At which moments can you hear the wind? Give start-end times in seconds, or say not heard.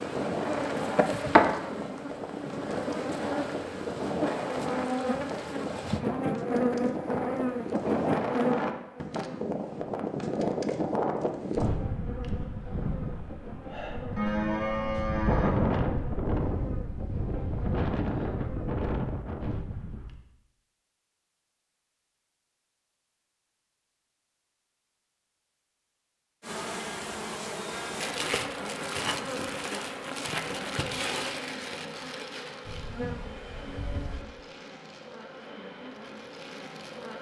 0.0-20.1.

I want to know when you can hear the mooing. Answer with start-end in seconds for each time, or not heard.
14.2-15.7, 32.6-34.2.